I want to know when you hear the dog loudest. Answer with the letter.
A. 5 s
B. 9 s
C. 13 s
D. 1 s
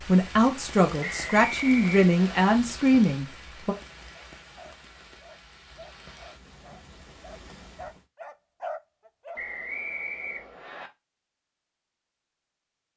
B.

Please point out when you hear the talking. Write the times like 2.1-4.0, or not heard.
0.0-3.8.